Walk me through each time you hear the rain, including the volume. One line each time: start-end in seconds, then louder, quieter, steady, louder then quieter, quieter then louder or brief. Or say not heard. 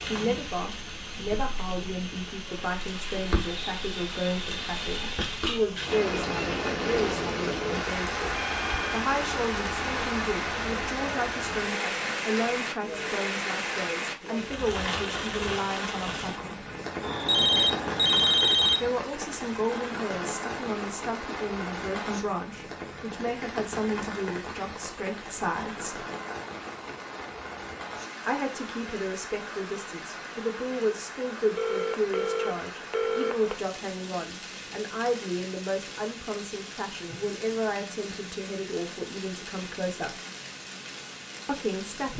0.0-42.1 quieter.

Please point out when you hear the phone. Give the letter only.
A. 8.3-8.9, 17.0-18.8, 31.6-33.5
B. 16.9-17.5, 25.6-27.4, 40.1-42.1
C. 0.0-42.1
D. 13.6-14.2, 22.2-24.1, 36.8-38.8
A.